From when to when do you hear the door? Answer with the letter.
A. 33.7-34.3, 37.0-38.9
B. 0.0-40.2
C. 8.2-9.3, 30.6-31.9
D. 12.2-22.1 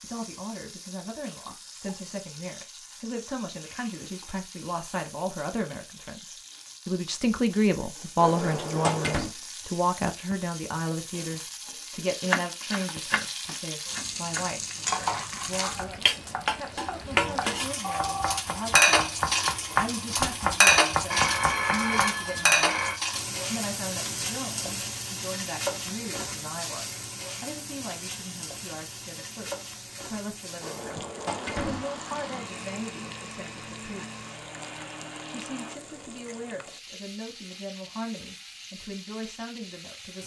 C.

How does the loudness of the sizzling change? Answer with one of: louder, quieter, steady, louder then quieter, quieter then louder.
louder then quieter.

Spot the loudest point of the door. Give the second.
9 s.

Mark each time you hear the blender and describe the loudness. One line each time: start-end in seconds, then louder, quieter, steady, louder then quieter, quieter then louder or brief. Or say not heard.
31.2-35.8 steady.